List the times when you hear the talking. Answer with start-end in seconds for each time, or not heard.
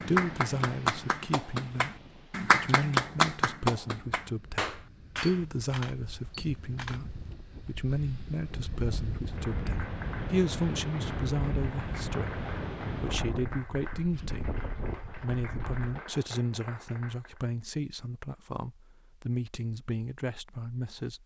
0.0-21.2.